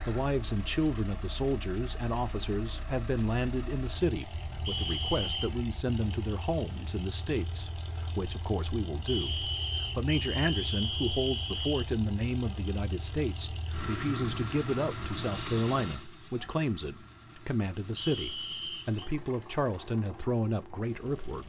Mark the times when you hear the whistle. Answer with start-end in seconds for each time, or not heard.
4.7-5.5, 9.1-11.8, 17.9-19.1.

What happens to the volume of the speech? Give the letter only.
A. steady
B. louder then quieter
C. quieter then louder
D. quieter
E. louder
A.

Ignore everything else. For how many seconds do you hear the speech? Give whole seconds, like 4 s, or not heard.
21 s.